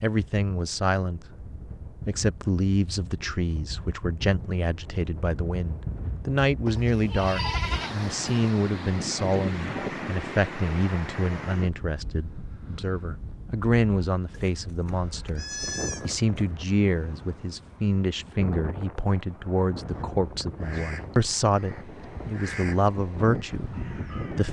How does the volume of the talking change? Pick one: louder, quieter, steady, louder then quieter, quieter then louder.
steady.